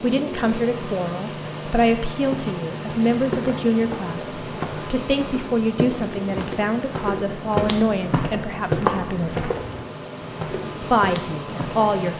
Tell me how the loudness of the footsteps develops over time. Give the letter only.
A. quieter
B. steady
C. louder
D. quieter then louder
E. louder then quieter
E.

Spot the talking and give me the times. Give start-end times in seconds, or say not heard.
0.0-9.5, 10.8-12.1.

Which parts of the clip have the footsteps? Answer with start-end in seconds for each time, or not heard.
2.1-11.9.